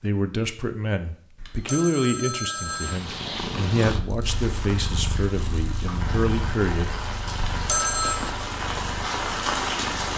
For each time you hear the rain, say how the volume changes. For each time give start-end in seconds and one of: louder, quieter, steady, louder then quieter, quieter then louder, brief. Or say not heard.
4.2-10.1 louder.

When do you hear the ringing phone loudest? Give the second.
8 s.